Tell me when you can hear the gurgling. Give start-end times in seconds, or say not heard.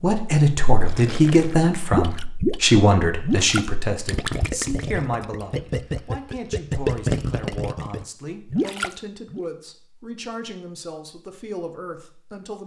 0.8-9.4.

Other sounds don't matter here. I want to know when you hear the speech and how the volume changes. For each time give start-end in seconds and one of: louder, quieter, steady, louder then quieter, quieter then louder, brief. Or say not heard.
0.0-12.6 quieter.